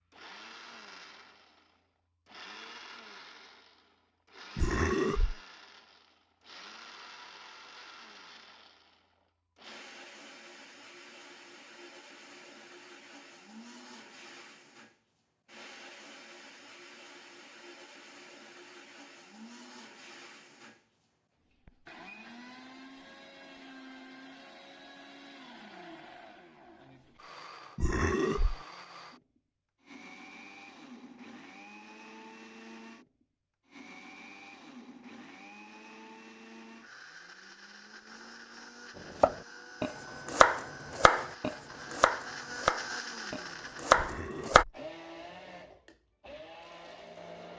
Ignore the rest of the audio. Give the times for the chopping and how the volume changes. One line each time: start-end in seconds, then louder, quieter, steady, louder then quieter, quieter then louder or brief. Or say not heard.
39.2-44.6 quieter then louder.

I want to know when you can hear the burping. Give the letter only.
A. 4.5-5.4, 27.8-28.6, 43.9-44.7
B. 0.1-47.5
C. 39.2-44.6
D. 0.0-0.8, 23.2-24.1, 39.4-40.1
A.